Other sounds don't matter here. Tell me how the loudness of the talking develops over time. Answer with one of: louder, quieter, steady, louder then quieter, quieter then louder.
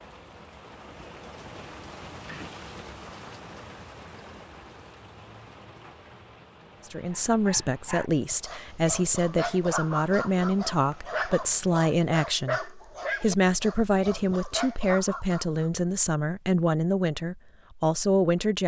steady.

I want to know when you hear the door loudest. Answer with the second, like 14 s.
2 s.